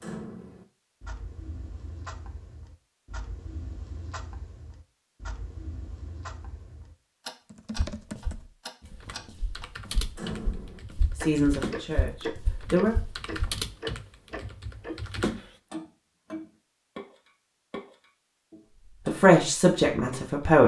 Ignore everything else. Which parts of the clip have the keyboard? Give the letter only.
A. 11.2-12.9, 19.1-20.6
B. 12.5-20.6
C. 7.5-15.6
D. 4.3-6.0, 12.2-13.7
C.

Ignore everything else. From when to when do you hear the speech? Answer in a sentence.
You can hear the speech from 11.2 to 12.9 s and from 19.1 to 20.6 s.